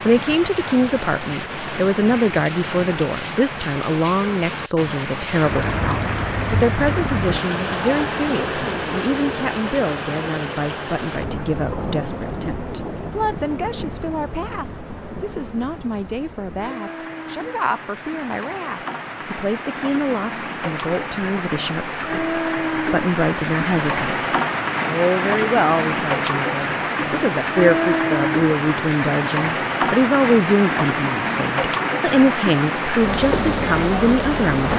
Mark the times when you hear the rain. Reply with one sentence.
The rain can be heard from 0.0 to 34.7 s.